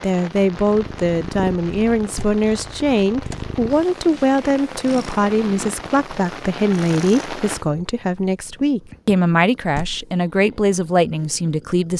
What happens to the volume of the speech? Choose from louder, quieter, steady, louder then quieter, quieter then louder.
steady.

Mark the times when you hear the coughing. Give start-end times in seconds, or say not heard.
not heard.